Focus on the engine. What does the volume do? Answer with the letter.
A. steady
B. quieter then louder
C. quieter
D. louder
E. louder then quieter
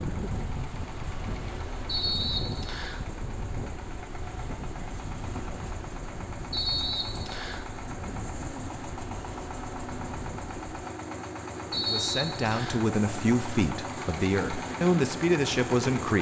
D.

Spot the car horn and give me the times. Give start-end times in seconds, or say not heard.
not heard.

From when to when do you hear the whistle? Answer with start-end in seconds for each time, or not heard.
1.9-3.0, 6.5-7.7, 11.7-12.8.